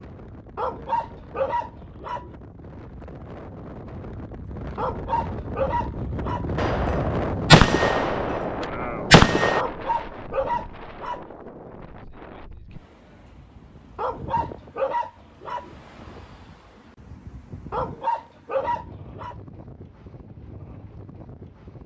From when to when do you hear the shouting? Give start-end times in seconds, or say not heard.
not heard.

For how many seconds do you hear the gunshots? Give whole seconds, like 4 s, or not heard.
3 s.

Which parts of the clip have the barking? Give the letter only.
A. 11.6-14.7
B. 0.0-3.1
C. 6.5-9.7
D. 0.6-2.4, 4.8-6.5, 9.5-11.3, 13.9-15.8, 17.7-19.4
D.